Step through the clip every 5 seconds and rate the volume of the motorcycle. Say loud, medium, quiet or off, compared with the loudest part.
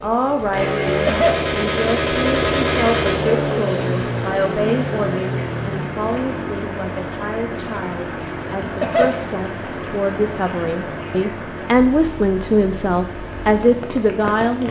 loud, medium, quiet.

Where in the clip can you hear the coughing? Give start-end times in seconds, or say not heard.
0.8-1.4, 8.6-9.2.